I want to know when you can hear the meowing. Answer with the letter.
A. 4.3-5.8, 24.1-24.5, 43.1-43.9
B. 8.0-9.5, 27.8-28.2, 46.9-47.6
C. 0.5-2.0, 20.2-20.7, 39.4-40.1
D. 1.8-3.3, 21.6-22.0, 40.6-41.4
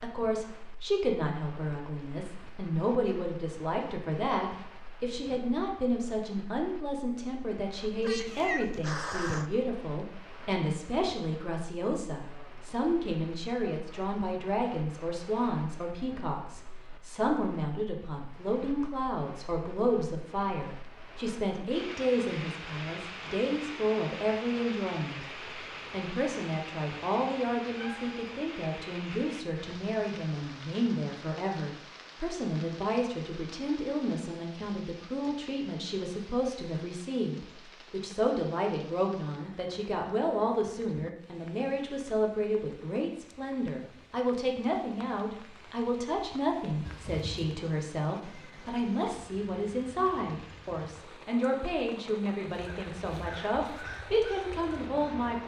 B.